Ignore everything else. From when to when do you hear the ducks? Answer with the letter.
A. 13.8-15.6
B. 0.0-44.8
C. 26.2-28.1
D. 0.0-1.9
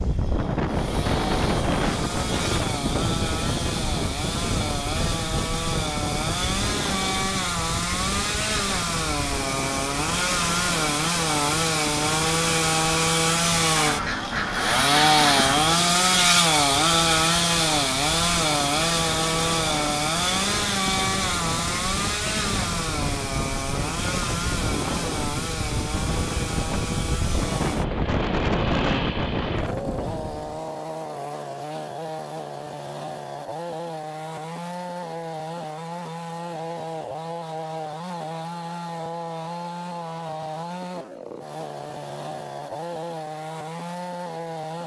A.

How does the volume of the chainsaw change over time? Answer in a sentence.
The volume of the chainsaw goes up, then down.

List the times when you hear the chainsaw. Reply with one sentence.
You can hear the chainsaw from 0.0 to 44.8 s.